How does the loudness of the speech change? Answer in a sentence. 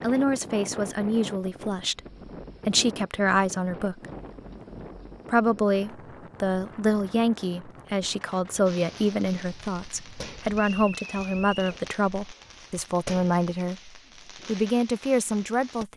The volume of the speech stays about the same.